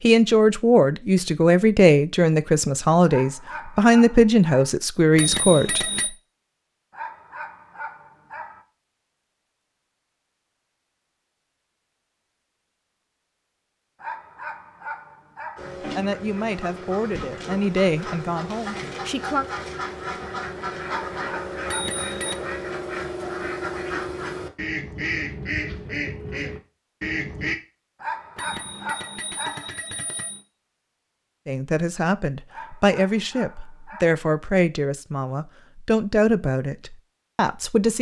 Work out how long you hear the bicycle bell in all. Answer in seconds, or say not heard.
4 s.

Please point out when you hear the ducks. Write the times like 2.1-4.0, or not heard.
15.6-27.6.